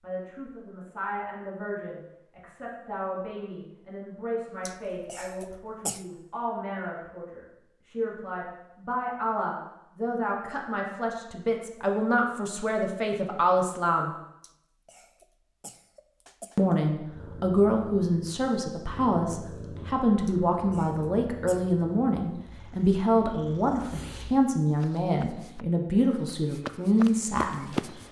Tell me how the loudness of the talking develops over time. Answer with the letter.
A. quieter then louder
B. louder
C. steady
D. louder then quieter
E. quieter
B.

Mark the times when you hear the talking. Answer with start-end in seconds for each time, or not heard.
0.0-14.1, 16.6-27.8.